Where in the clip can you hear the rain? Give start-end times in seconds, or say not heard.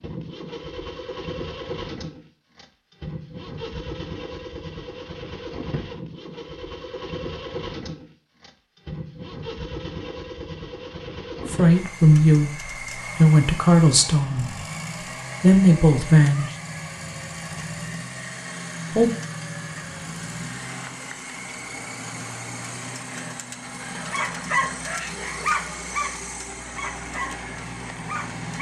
not heard.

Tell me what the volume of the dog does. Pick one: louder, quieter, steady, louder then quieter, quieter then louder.
quieter.